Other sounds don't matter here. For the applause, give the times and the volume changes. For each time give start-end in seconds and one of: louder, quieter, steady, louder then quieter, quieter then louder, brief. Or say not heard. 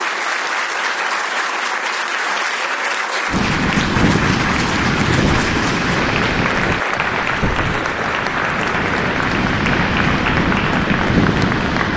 0.0-11.9 steady.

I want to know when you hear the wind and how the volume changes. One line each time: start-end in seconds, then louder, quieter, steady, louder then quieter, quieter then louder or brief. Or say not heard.
3.2-11.9 quieter then louder.